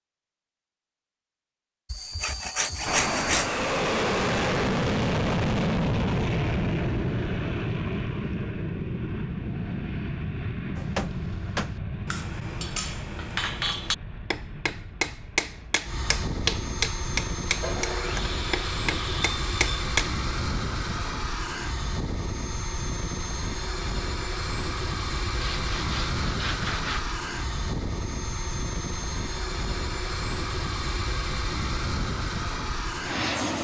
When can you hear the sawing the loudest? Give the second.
3 s.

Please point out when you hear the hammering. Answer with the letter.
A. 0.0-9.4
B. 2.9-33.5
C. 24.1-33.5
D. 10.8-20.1
D.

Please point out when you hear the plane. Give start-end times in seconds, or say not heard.
2.9-33.5.